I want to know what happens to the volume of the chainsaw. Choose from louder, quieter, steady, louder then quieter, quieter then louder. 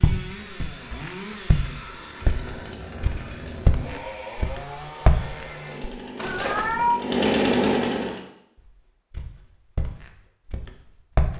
louder.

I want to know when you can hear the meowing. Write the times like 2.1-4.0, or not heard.
2.2-3.7, 6.2-7.0.